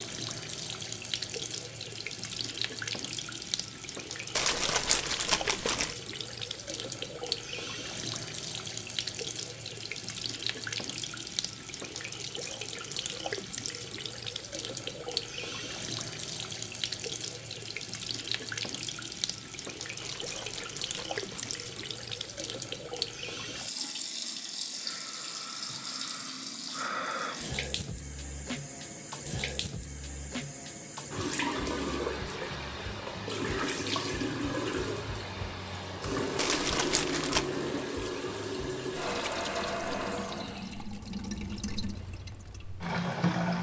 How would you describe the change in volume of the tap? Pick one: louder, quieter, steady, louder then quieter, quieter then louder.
steady.